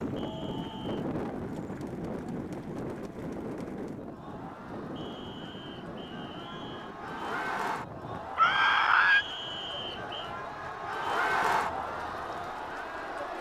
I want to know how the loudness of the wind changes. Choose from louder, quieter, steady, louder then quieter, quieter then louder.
quieter.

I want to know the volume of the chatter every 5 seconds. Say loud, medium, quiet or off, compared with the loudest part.
quiet, medium, loud.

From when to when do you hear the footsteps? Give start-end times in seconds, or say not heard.
not heard.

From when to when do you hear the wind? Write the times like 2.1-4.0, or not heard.
0.0-13.3.